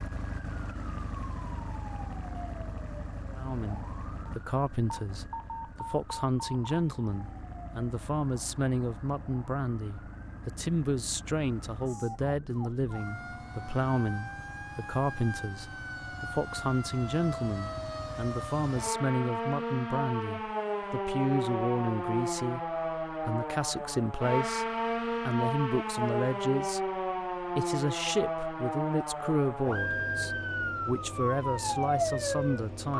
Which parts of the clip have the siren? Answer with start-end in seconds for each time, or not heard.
0.0-32.9.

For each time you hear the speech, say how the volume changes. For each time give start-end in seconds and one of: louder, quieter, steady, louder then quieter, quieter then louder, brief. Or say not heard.
3.4-32.9 steady.